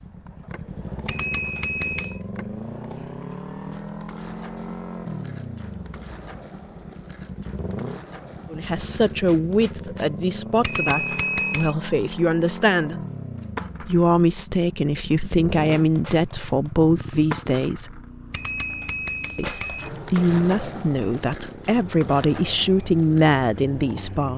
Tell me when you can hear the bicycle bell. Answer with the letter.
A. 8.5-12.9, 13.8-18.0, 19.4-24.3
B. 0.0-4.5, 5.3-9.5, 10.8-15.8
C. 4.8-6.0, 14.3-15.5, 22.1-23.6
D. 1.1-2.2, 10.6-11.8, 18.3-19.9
D.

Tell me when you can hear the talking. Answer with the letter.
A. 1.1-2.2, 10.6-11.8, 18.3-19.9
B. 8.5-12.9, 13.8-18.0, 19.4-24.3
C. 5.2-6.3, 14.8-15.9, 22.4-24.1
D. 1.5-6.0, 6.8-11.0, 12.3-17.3
B.